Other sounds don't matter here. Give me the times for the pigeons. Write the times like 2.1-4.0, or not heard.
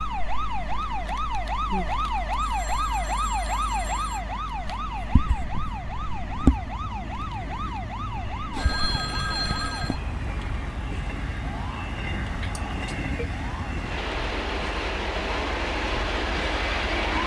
not heard.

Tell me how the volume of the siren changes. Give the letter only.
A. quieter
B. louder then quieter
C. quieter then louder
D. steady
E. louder
A.